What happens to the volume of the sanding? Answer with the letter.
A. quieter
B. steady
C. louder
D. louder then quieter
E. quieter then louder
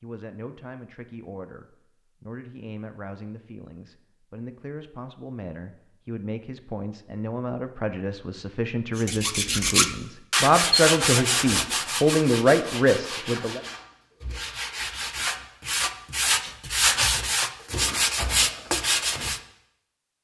E.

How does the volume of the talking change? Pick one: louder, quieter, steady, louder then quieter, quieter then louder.
louder.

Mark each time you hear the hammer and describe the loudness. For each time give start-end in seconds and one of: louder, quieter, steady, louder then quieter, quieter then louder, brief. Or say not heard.
not heard.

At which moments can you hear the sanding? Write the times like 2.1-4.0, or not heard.
8.9-19.4.